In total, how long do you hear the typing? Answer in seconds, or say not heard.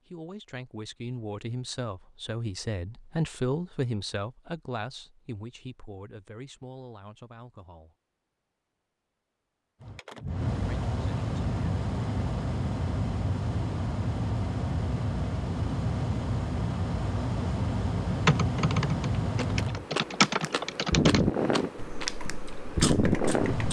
5 s.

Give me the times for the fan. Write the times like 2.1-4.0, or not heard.
9.8-23.6.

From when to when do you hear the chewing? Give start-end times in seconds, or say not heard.
19.4-23.6.